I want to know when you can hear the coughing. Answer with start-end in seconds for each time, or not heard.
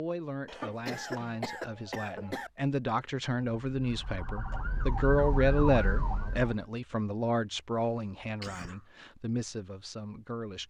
0.5-2.5, 8.4-8.8.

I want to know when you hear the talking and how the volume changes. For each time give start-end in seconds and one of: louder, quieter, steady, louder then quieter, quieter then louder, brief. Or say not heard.
0.0-10.6 louder then quieter.